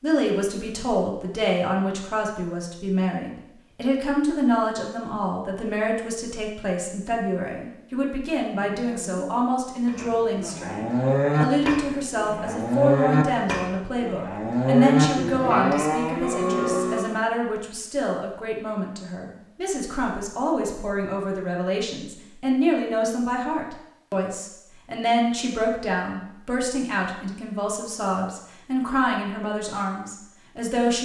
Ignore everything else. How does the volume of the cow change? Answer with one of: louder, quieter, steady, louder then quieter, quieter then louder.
louder.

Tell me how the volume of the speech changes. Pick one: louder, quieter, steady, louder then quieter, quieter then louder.
steady.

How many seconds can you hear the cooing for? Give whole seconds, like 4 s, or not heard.
not heard.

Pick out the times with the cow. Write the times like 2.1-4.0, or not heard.
8.6-17.1.